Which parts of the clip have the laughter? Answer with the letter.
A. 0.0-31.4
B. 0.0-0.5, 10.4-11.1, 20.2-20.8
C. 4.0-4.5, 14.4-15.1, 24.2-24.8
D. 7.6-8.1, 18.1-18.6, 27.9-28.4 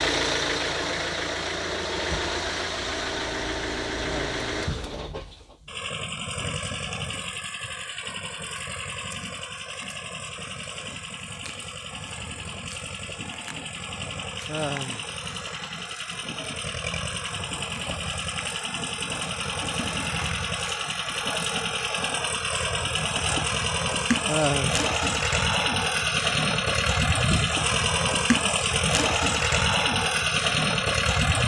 C.